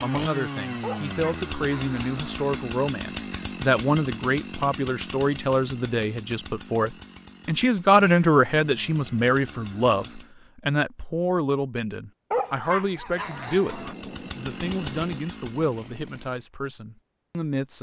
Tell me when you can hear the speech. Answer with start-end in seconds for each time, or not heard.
0.0-17.7.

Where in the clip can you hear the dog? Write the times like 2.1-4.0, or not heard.
0.8-2.5, 12.3-13.9.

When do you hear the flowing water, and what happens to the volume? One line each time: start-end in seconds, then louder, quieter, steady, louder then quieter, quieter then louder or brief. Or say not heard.
not heard.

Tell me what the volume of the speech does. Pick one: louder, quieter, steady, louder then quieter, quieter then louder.
louder then quieter.